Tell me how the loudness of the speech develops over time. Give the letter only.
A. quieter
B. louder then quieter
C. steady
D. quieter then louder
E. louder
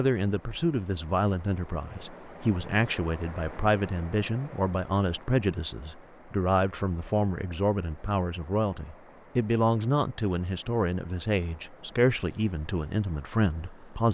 C.